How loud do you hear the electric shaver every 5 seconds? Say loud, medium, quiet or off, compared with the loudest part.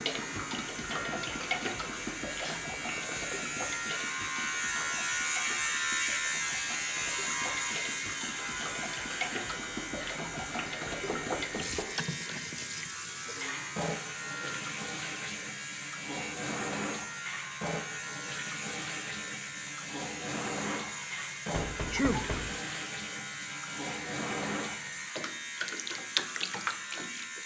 loud, loud, medium, medium, medium, medium.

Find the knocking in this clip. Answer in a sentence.
You can hear the knocking from 2.8 to 3.5 s, from 11.1 to 12.0 s and from 21.5 to 22.6 s.